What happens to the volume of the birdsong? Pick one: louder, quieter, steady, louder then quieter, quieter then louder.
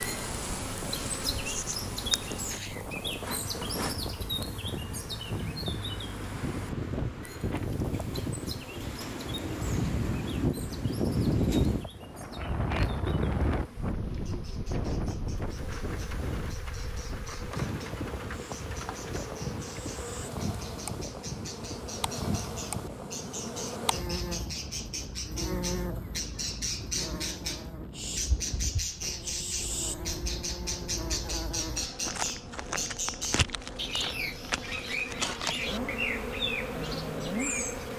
quieter then louder.